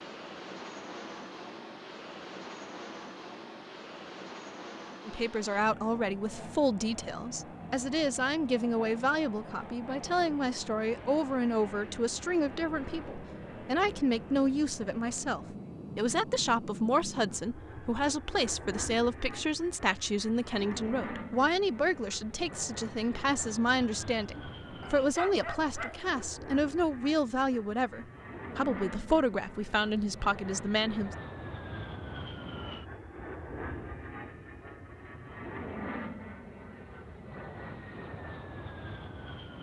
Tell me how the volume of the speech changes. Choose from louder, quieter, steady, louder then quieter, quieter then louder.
steady.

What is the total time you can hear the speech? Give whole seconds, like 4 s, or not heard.
26 s.